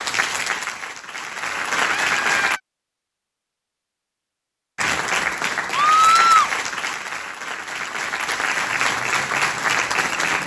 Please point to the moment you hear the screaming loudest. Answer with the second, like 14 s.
6 s.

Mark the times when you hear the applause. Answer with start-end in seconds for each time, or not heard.
0.0-2.6, 4.8-10.4.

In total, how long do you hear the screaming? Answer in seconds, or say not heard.
2 s.